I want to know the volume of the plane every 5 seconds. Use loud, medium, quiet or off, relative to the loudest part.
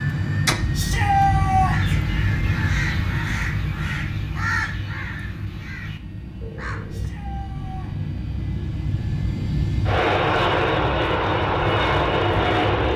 medium, medium, loud.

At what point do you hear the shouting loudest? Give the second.
1 s.